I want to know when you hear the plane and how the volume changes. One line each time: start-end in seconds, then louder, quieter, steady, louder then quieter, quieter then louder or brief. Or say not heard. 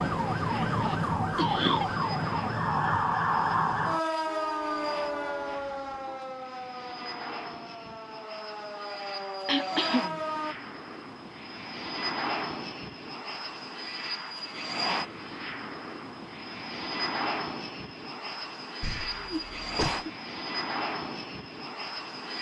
0.0-22.3 louder.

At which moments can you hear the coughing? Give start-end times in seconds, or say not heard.
0.8-1.9, 9.4-10.2, 18.8-20.1.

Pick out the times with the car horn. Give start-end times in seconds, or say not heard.
4.2-6.2.